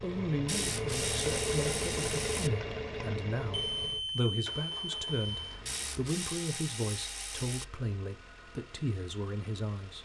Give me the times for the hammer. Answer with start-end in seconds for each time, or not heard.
not heard.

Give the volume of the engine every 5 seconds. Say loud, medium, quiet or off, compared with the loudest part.
loud, quiet.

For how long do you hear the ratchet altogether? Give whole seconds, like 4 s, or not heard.
4 s.